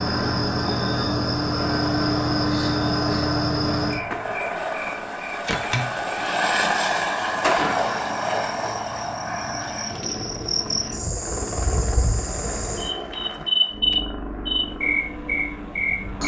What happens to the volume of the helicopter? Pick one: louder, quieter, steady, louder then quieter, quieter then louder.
louder then quieter.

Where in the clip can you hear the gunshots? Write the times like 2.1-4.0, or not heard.
7.4-8.8.